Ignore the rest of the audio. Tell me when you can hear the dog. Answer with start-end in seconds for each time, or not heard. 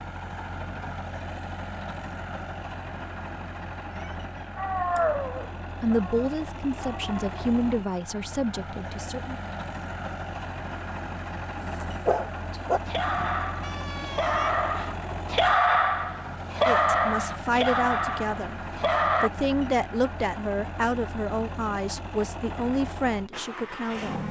4.5-7.3, 11.6-19.3.